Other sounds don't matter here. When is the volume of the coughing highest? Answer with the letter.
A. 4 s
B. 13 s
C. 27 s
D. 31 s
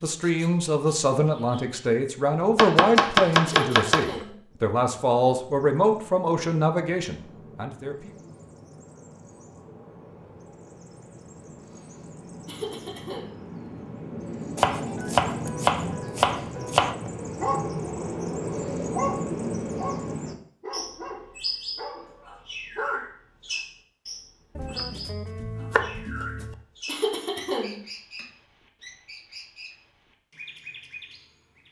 C.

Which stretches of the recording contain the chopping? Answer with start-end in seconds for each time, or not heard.
2.5-4.1, 14.6-16.9, 24.6-26.6.